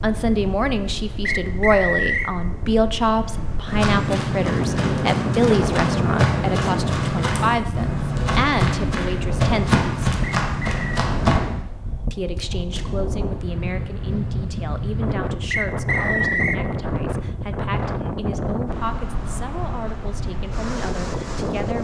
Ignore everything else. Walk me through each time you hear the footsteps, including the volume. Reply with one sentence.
You can hear the footsteps from 3.6 to 11.4 s, at a steady volume.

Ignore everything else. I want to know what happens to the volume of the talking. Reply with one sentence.
The loudness of the talking goes down.